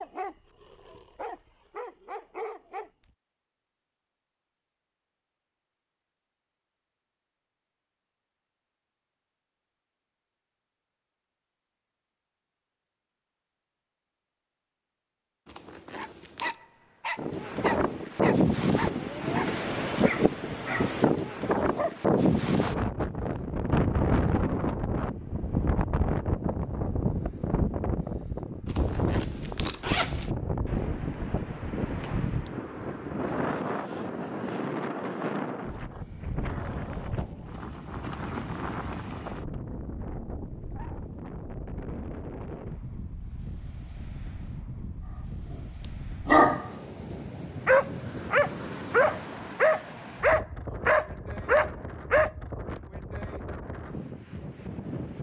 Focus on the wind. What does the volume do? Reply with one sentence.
The loudness of the wind goes down.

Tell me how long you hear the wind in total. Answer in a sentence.
You can hear the wind for 38 seconds altogether.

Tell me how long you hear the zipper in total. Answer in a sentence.
You can hear the zipper for 3 seconds altogether.